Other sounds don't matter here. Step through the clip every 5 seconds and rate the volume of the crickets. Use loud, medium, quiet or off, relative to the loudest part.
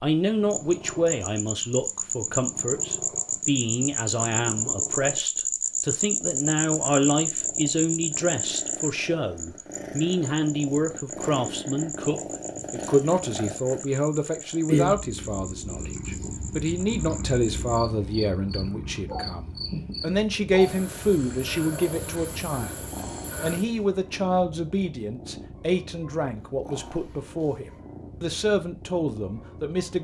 loud, loud, medium, medium, medium, off.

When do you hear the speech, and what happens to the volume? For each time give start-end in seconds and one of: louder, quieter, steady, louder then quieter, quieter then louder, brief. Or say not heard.
0.0-29.9 steady.